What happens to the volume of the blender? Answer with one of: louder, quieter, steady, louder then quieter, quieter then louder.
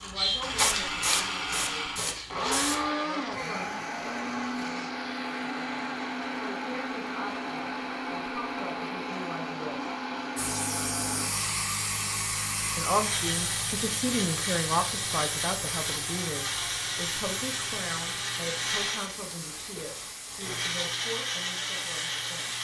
steady.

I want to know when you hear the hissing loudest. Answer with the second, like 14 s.
1 s.